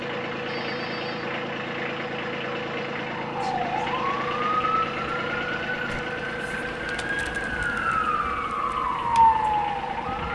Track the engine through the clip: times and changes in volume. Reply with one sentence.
You can hear the engine from 0.0 to 10.2 s, getting quieter.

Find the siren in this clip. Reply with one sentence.
The siren can be heard from 3.1 to 10.2 s.